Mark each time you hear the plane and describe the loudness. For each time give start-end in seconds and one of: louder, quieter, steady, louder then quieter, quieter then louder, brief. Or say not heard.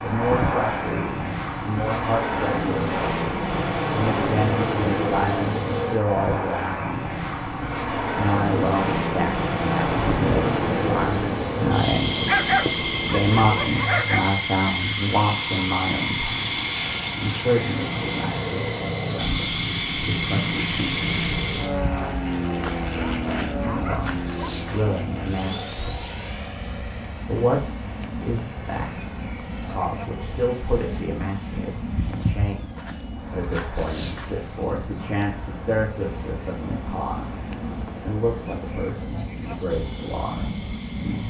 0.0-41.2 quieter.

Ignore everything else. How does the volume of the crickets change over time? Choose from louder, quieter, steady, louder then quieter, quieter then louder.
steady.